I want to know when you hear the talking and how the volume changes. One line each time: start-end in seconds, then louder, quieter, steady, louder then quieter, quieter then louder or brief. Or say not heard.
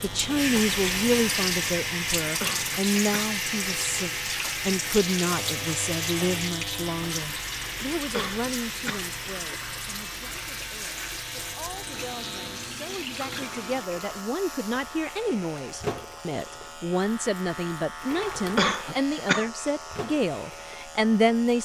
0.0-21.6 quieter then louder.